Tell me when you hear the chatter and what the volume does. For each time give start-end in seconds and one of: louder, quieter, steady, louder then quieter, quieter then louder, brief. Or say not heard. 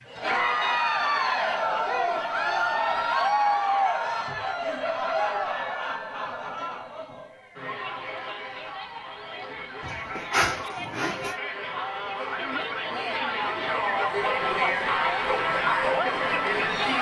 0.1-16.9 quieter then louder.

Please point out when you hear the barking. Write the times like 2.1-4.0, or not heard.
9.8-11.3.